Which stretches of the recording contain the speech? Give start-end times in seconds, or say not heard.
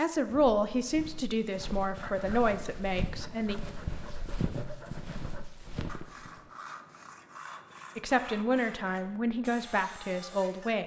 0.0-3.5, 8.0-10.8.